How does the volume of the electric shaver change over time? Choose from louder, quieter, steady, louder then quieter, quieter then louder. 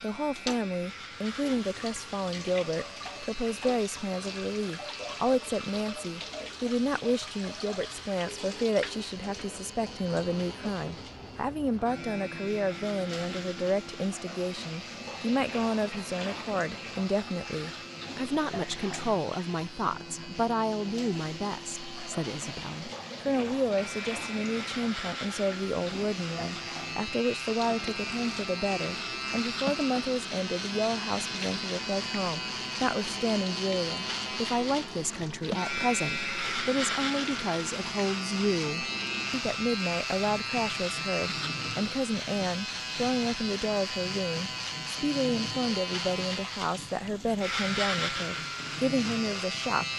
louder.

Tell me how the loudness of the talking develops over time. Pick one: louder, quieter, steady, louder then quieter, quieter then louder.
steady.